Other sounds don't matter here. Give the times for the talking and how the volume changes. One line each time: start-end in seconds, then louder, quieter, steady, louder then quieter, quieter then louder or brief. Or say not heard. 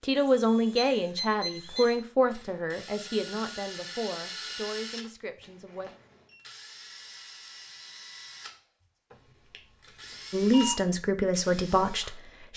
0.0-5.9 quieter
10.3-12.5 brief.